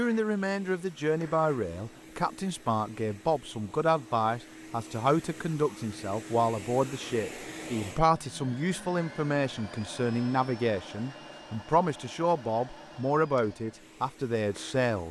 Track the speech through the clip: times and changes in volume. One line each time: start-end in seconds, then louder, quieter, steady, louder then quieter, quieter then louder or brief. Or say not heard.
0.0-15.0 steady.